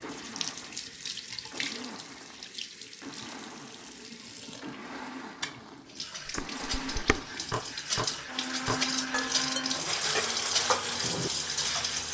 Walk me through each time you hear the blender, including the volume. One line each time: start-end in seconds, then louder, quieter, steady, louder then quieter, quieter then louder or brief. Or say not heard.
0.0-12.1 louder.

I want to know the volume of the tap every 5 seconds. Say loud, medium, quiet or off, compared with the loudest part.
medium, loud, loud.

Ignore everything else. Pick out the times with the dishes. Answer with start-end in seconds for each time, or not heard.
6.2-12.0.